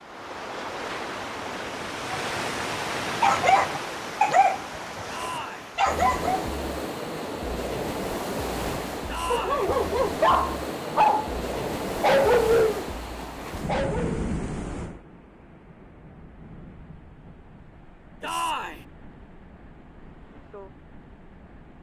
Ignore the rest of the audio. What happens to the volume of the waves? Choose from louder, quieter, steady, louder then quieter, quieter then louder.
quieter.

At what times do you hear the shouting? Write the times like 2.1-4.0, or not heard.
5.1-5.7, 9.1-9.7, 18.2-18.9.